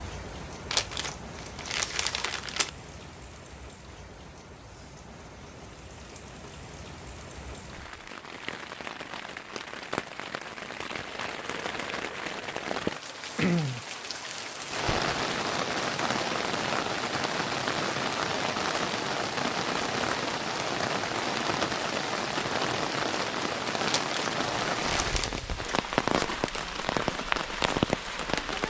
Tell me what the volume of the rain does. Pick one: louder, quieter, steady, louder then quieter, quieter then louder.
louder.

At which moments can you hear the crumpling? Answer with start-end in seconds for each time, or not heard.
0.7-2.7, 23.9-25.3.